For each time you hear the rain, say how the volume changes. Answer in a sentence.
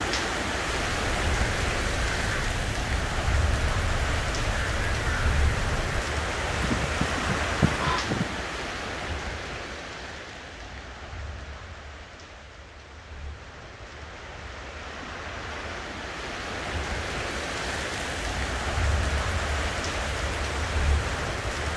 You can hear the rain from 0.0 to 21.7 s, getting quieter then louder.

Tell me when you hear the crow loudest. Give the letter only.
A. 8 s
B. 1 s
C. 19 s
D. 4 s
A.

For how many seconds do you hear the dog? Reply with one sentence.
You can't hear the dog here.